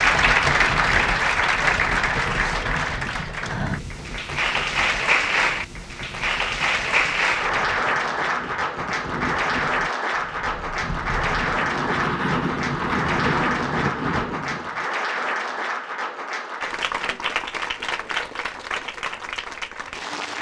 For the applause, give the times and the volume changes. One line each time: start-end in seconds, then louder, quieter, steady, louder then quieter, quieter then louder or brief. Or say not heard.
0.0-20.3 quieter.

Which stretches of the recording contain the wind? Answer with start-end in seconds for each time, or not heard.
0.0-14.8.